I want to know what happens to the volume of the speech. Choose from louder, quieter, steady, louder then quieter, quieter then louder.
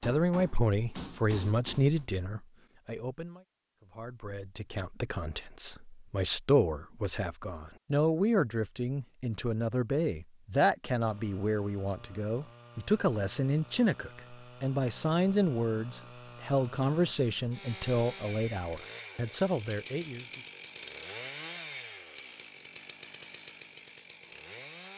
steady.